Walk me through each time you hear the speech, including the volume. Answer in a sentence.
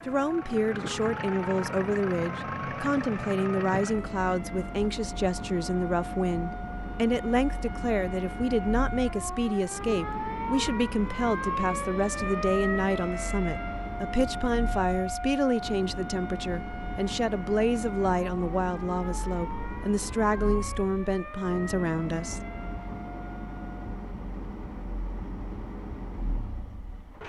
The speech can be heard from 0.1 to 22.4 s, at a steady volume.